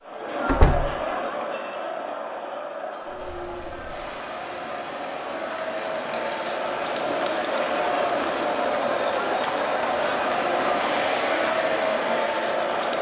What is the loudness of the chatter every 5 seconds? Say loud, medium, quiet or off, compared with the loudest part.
medium, loud, loud.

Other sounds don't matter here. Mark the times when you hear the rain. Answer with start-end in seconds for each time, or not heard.
3.0-12.9.